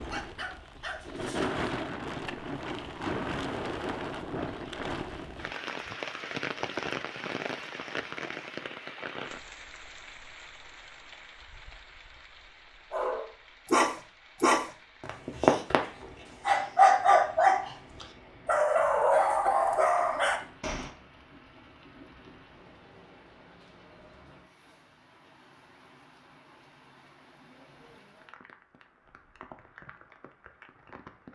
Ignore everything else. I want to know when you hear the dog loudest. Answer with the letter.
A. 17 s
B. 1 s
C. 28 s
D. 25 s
A.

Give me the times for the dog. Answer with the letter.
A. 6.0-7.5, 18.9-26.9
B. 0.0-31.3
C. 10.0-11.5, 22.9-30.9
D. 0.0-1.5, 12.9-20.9
D.